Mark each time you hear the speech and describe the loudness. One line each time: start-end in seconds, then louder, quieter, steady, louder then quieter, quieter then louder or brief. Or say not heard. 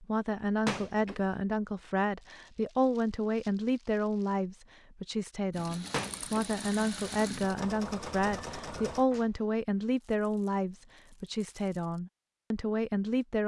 0.0-13.4 steady.